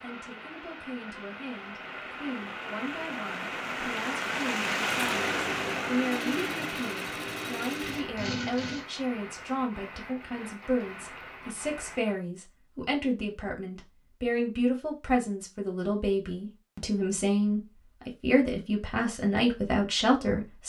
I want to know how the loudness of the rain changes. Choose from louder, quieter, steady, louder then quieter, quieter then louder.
louder then quieter.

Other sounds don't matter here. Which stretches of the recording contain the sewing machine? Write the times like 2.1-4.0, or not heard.
4.8-8.8.